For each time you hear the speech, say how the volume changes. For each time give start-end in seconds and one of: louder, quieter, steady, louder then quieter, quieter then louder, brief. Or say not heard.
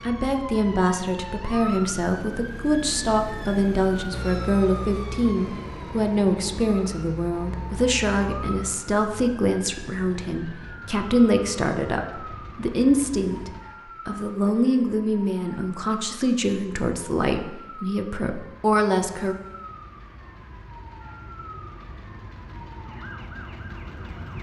0.1-19.4 steady.